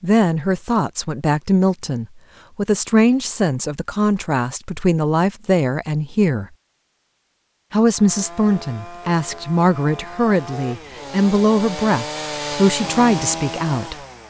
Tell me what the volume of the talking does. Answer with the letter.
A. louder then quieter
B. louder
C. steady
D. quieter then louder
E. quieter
C.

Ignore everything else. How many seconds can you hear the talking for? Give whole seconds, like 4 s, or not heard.
13 s.